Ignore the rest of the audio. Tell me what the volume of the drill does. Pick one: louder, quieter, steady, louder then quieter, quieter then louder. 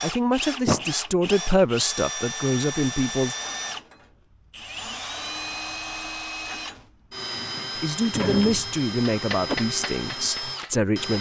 steady.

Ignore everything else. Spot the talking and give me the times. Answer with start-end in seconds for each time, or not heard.
0.0-3.4, 7.8-11.1.